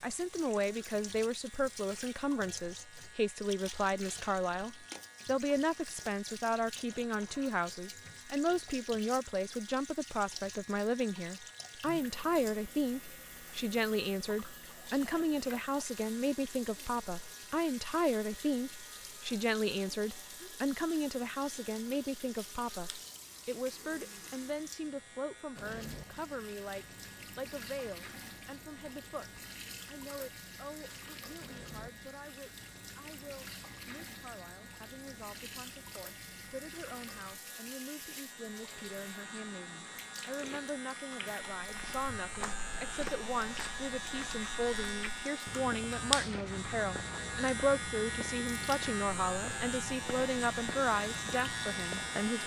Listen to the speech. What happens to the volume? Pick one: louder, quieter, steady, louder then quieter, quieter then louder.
quieter then louder.